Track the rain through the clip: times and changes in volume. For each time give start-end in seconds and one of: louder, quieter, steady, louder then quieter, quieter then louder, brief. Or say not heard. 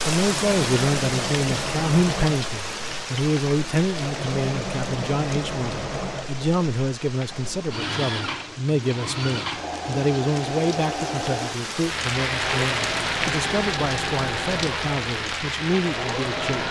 0.0-16.6 quieter then louder.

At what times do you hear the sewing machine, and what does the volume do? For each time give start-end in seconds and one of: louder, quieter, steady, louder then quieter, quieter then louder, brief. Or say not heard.
0.0-16.6 steady.